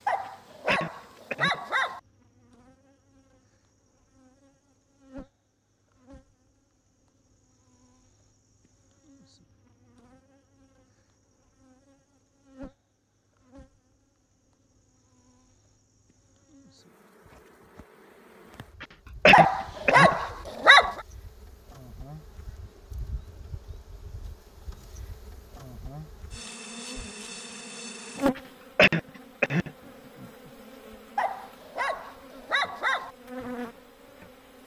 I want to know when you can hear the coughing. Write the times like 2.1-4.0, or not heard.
0.7-1.6, 18.8-20.1, 28.4-29.7.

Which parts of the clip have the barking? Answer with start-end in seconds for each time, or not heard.
0.1-2.0, 19.3-21.0, 31.1-33.1.